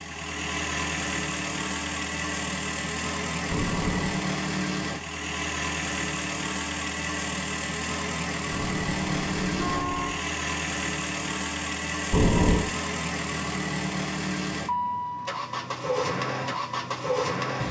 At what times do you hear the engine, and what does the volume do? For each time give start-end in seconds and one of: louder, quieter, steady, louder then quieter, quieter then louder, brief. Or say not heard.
0.0-17.6 steady.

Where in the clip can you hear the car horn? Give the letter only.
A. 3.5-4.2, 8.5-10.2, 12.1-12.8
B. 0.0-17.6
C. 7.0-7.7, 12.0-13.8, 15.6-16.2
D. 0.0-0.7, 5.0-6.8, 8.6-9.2
A.